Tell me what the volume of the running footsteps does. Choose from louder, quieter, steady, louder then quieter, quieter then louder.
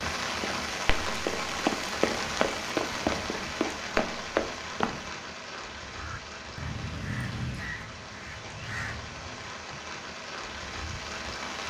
steady.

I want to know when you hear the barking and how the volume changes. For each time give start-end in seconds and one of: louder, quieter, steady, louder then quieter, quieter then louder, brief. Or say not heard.
not heard.